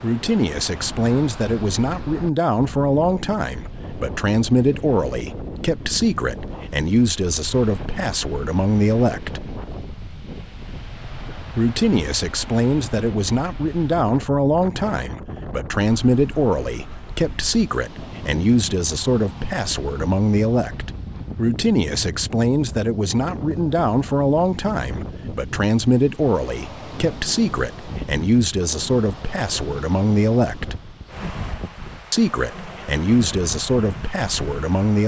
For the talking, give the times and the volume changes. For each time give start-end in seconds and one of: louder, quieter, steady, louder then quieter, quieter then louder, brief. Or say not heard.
0.0-9.4 steady
11.6-30.8 steady
32.1-35.0 brief.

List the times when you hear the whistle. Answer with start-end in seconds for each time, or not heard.
not heard.